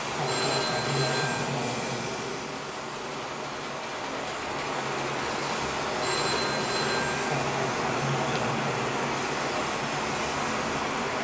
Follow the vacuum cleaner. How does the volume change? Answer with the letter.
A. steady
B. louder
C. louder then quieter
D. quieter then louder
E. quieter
D.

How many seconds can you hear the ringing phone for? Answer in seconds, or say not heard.
2 s.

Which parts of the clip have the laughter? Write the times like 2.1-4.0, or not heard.
0.1-2.3, 7.2-8.9.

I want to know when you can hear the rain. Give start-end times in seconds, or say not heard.
0.0-11.1.